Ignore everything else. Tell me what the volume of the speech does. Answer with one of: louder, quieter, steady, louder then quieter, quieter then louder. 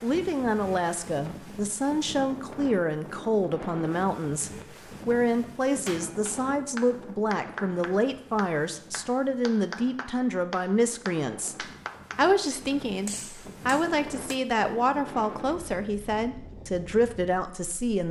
steady.